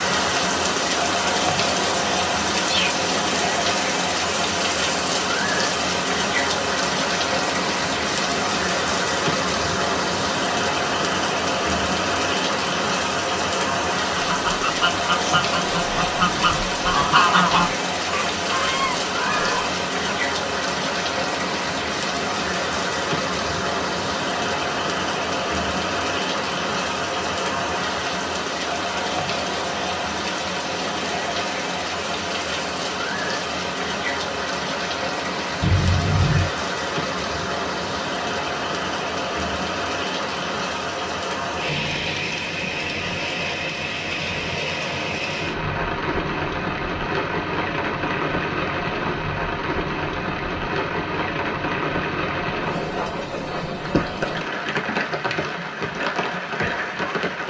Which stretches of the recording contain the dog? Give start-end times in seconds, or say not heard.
not heard.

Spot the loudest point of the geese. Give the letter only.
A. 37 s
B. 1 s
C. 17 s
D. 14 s
C.